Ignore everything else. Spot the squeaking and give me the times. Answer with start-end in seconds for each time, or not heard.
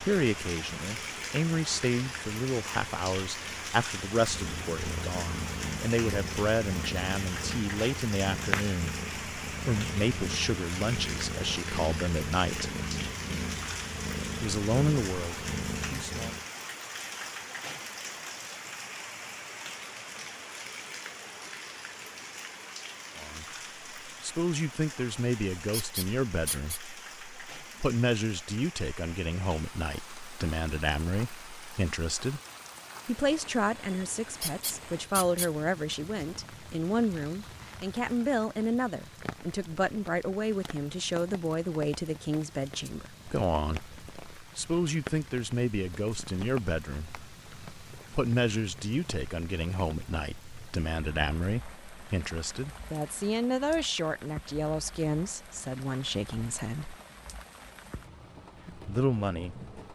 25.7-26.8, 34.4-35.5.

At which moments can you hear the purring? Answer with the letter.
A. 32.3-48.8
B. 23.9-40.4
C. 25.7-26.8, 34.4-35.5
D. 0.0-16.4
D.